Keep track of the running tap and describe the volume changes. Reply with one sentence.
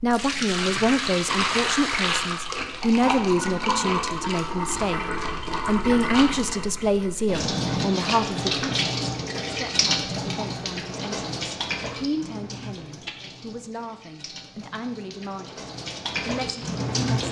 The volume of the running tap goes down.